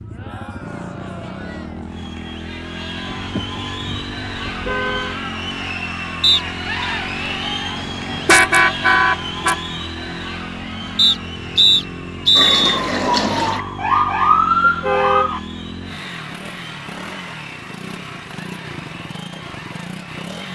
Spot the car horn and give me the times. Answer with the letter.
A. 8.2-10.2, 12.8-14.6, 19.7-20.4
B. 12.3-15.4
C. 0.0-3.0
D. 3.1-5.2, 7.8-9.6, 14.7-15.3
D.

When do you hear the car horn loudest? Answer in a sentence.
The loudest moment of the car horn is at 8 seconds.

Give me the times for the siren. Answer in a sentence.
You can hear the siren from 12.3 to 15.4 s.